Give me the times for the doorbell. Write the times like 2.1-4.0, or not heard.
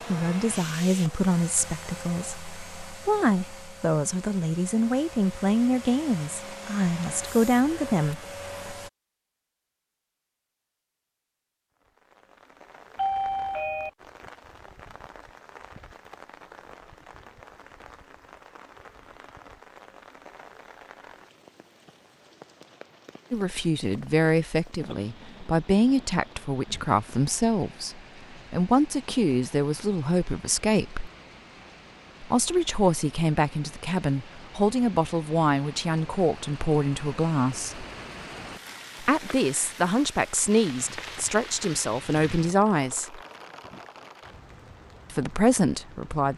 12.9-13.9.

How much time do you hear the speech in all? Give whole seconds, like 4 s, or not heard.
27 s.